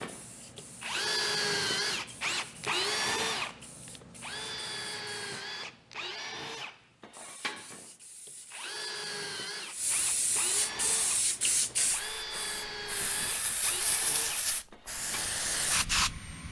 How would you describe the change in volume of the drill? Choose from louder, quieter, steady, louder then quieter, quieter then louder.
quieter.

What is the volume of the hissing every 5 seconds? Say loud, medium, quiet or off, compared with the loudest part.
quiet, quiet, loud, loud.